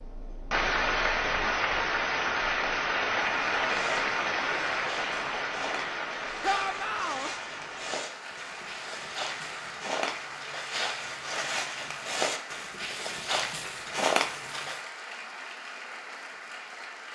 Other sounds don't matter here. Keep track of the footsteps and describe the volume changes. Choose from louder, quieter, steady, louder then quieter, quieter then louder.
louder.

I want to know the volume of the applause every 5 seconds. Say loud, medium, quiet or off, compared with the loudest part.
loud, medium, quiet, quiet.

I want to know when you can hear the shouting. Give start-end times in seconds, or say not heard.
6.4-7.3.